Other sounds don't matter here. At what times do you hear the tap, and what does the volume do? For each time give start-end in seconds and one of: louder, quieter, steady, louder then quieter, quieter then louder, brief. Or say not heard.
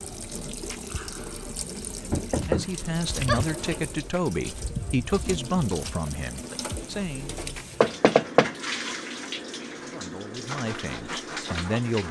0.0-12.0 steady.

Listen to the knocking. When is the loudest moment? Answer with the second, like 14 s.
8 s.